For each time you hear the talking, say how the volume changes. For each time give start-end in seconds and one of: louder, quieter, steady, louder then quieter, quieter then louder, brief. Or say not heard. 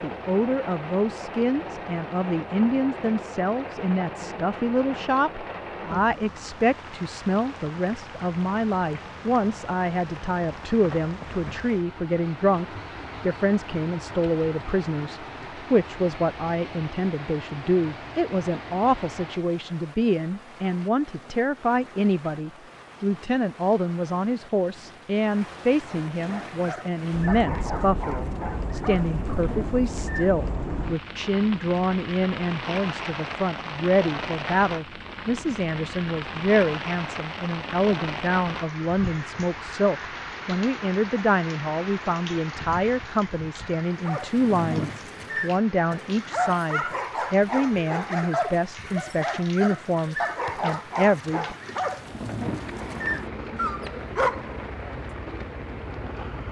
0.0-51.5 steady.